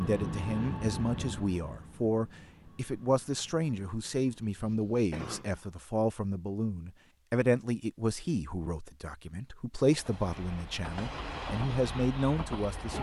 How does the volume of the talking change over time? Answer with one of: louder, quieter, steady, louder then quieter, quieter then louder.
steady.